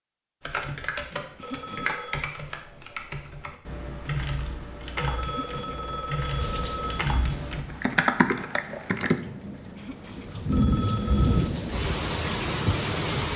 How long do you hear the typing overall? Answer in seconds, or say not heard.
9 s.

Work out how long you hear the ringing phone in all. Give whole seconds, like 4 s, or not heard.
4 s.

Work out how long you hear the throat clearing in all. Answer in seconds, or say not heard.
2 s.